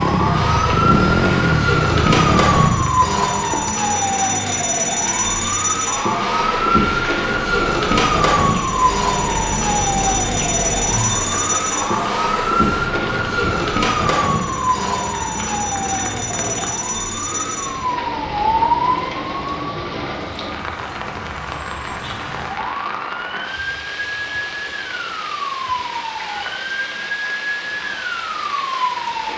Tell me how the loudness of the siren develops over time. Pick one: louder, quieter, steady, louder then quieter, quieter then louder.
quieter.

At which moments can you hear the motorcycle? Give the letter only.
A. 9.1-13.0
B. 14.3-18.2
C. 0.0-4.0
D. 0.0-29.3
C.